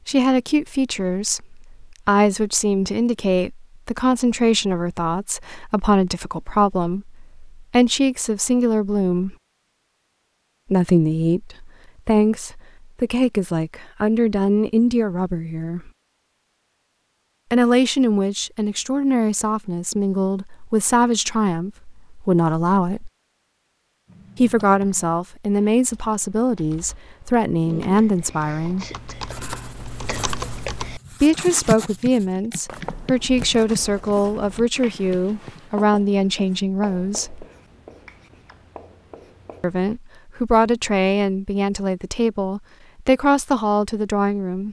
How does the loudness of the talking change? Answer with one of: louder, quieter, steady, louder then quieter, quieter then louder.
steady.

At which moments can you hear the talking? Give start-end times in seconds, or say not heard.
0.1-9.3, 10.7-15.9, 17.5-23.1, 24.4-28.9, 31.2-37.5, 39.6-44.6.